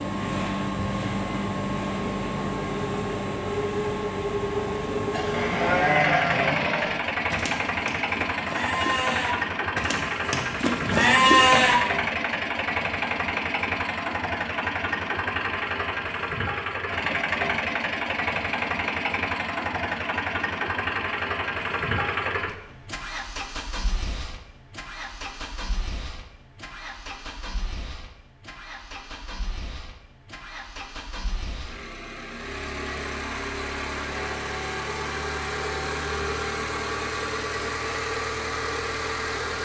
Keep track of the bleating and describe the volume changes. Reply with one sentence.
The volume of the bleating goes down, then up.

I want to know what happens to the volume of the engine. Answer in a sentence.
The loudness of the engine goes down, then up.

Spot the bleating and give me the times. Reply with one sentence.
The bleating can be heard from 5.1 to 11.8 s.